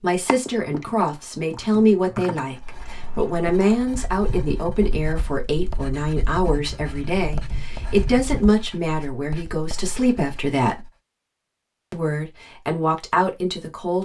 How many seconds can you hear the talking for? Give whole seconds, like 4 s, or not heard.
13 s.